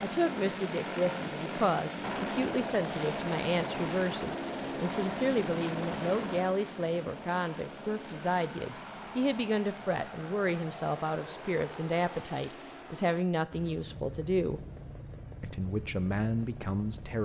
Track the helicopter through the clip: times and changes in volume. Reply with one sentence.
The helicopter can be heard from 0.0 to 17.2 s, getting quieter.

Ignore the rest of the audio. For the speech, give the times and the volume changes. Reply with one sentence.
You can hear the speech from 0.0 to 14.6 s, at a steady volume; and briefly from 15.4 to 17.2 s.